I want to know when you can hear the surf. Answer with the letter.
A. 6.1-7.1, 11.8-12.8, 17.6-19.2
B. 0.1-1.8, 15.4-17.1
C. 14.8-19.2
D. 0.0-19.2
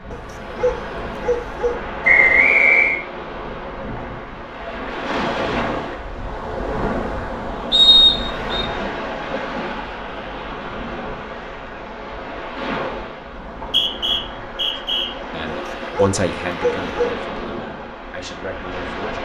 D.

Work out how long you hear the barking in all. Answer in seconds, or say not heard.
3 s.